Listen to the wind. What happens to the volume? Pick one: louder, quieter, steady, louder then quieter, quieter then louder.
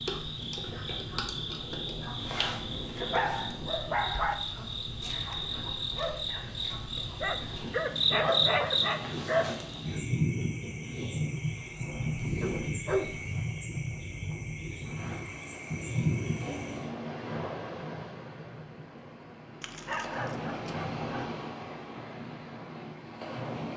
steady.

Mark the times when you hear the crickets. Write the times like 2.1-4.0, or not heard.
0.0-16.9.